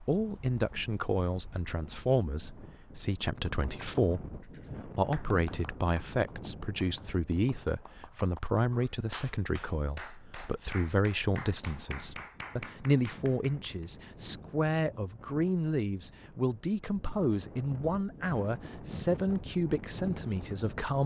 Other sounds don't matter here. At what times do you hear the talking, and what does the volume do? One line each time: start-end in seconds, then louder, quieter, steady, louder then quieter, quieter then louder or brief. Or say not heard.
0.1-21.0 steady.